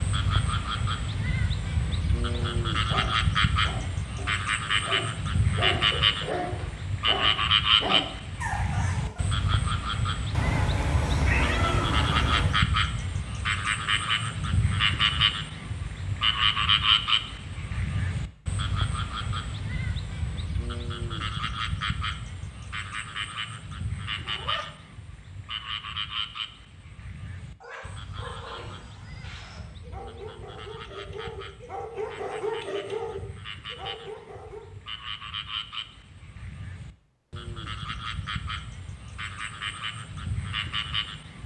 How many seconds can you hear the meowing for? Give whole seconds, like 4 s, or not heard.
3 s.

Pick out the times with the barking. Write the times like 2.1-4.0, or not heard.
2.3-9.4, 27.6-34.6.